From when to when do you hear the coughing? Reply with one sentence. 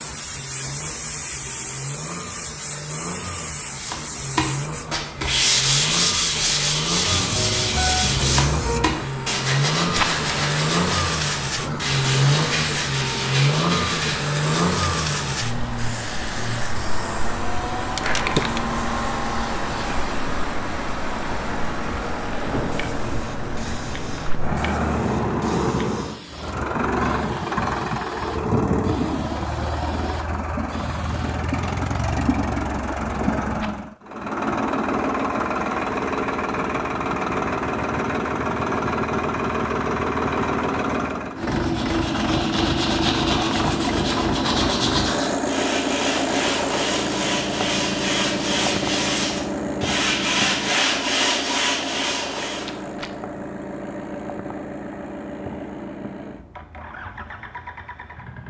You can't hear the coughing here.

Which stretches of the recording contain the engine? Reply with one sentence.
The engine can be heard from 0.0 to 58.4 s.